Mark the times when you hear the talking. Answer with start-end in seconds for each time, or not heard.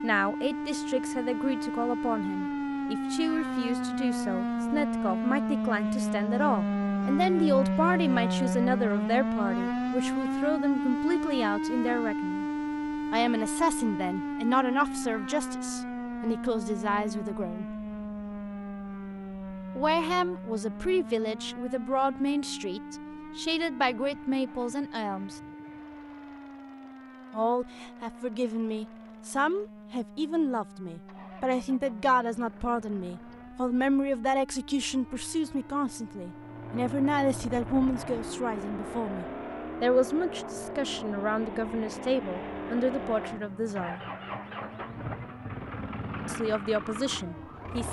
0.0-12.4, 13.1-17.6, 19.8-25.4, 27.3-44.0, 46.2-47.8.